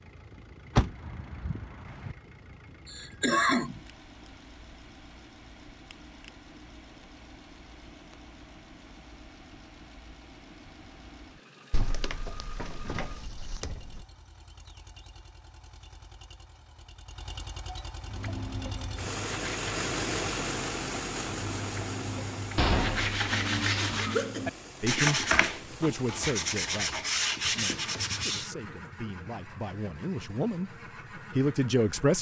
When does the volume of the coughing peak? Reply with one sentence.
The volume of the coughing peaks at 3 seconds.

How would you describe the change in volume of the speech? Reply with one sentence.
The loudness of the speech goes down, then up.